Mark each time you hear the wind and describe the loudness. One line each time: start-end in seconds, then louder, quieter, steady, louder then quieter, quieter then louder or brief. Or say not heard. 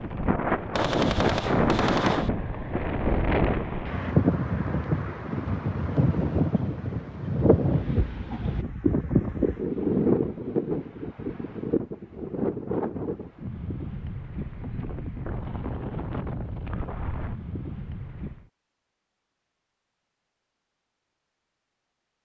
0.0-18.4 quieter.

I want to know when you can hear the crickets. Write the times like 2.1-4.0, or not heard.
not heard.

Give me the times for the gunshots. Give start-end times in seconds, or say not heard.
0.8-2.3.